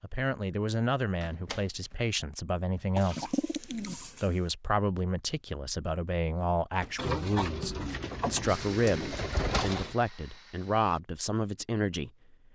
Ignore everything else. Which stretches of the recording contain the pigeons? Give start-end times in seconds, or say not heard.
3.0-4.3, 7.0-9.9.